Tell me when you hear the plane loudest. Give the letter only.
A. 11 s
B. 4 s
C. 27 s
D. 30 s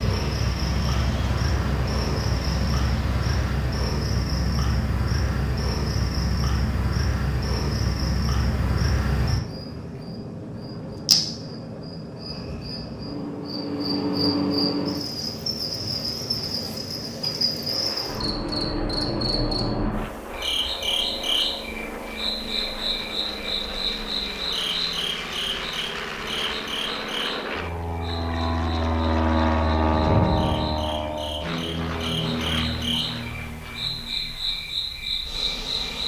D.